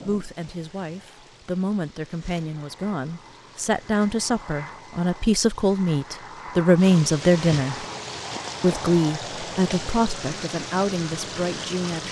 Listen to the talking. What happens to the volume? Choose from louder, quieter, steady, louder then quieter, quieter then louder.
louder then quieter.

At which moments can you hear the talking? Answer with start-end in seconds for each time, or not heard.
0.0-7.8, 8.6-12.0.